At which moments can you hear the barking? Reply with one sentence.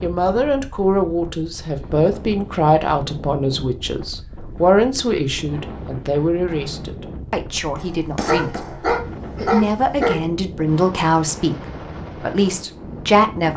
You can hear the barking from 8.2 to 10.2 s.